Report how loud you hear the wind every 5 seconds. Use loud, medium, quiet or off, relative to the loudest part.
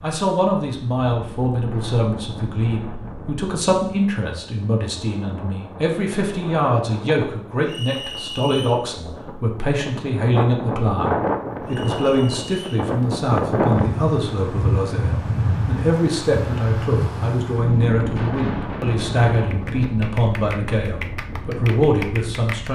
quiet, quiet, loud, loud, medium.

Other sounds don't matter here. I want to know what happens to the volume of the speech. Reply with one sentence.
The loudness of the speech stays about the same.